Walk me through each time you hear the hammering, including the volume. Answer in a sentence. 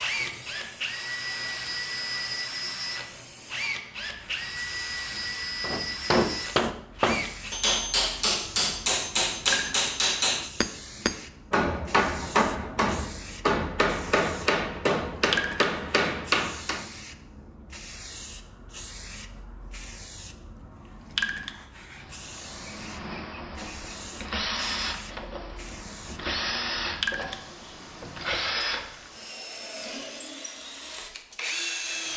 The hammering can be heard from 5.6 to 16.9 s, at a steady volume.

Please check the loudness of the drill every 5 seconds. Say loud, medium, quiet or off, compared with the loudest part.
loud, loud, off, off, loud, loud, loud.